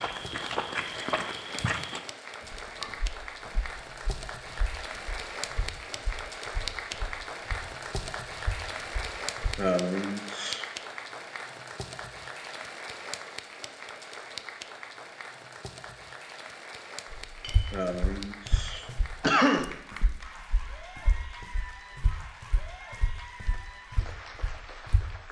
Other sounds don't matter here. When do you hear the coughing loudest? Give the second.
19 s.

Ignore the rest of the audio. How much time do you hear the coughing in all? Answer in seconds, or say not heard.
3 s.